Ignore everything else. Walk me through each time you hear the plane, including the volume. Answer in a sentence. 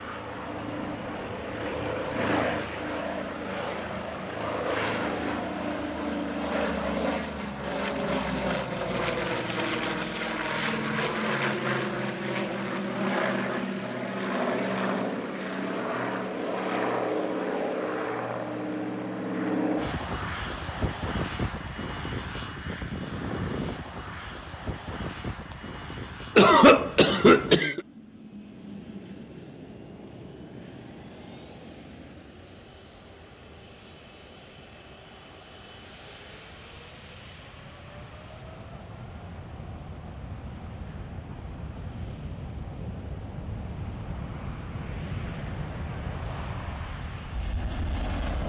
You can hear the plane from 0.0 to 48.4 s, getting quieter then louder.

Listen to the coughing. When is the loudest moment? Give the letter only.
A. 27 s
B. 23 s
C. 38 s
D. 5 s
A.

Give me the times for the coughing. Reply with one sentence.
The coughing can be heard from 3.5 to 4.0 s and from 25.5 to 27.8 s.